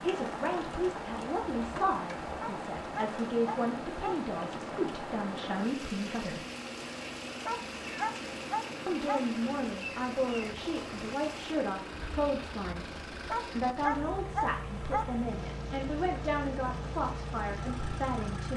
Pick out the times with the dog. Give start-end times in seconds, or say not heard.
2.4-4.2, 7.5-9.2, 13.3-15.1.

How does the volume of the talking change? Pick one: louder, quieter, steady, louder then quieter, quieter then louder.
steady.